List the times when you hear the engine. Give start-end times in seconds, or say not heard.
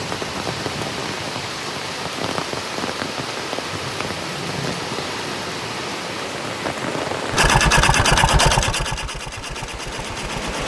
7.3-10.6.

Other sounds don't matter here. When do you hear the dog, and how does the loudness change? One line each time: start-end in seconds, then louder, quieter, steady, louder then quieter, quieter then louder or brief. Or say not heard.
not heard.